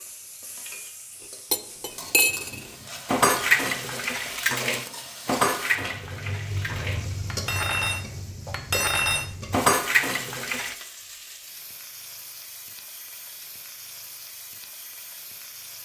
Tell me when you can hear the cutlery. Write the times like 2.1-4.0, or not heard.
1.5-10.8.